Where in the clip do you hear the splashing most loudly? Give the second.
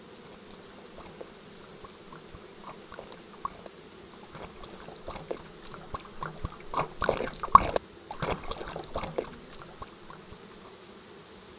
8 s.